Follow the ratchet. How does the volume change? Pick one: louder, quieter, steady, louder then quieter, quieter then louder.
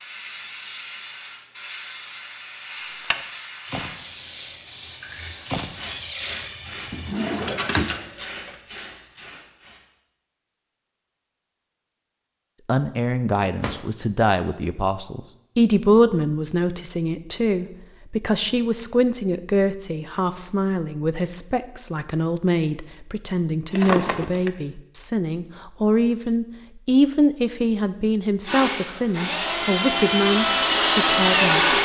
quieter then louder.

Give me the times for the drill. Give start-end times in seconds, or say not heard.
28.4-31.7.